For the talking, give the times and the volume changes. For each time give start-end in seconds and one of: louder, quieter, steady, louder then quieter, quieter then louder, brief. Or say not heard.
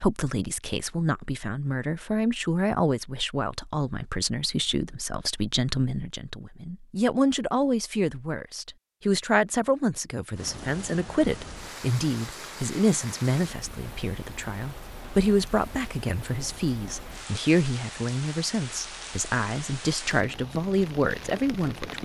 0.0-22.0 steady.